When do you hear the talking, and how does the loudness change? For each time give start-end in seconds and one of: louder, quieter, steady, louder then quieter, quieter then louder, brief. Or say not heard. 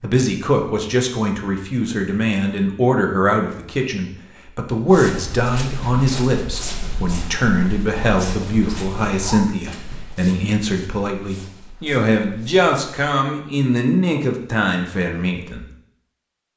0.0-15.7 steady.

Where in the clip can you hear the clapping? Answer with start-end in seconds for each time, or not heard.
not heard.